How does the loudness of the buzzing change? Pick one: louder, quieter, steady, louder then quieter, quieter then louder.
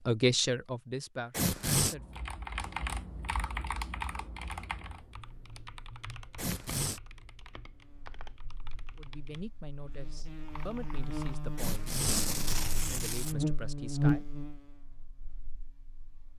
louder then quieter.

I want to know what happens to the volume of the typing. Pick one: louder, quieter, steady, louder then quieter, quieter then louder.
quieter.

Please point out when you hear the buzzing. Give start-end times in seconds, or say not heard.
7.8-16.3.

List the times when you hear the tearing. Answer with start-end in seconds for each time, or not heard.
1.3-1.9, 6.3-7.0, 11.6-13.3.